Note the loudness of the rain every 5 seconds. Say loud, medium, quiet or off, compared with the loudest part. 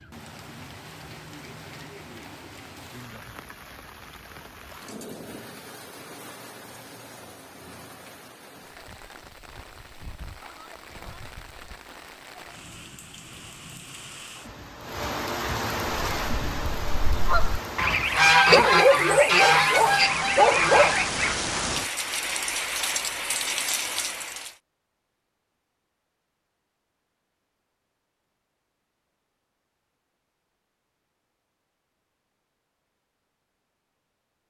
quiet, quiet, quiet, loud, loud, off, off.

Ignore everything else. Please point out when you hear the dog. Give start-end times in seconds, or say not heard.
18.5-20.9.